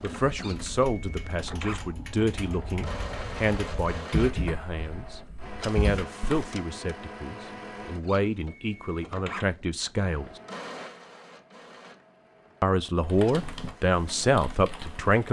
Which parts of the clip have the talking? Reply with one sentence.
The talking can be heard from 0.0 to 10.4 s and from 12.6 to 15.2 s.